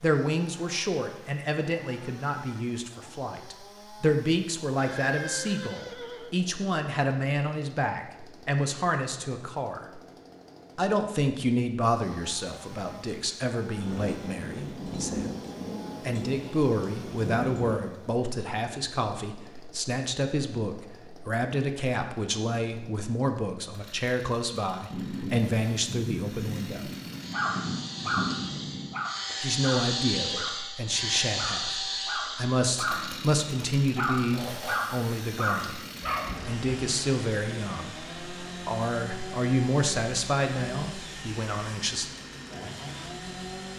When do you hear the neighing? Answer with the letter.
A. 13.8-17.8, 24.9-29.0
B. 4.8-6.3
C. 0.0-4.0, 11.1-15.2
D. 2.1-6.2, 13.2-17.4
B.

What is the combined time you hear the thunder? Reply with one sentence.
The thunder can be heard for 8 seconds in total.